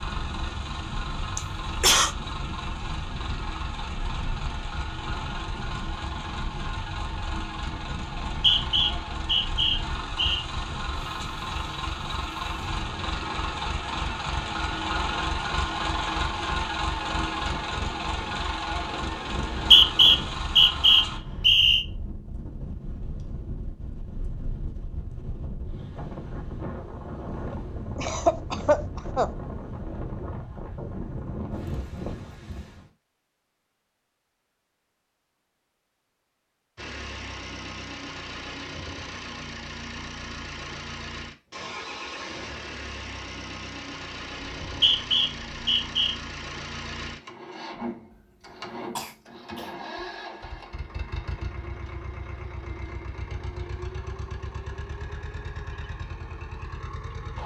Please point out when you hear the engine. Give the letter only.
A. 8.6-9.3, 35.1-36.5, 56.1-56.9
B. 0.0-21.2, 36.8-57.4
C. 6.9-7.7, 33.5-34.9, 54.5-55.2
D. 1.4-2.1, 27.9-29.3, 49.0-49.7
B.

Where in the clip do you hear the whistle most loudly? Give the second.
20 s.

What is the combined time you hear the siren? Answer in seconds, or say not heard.
not heard.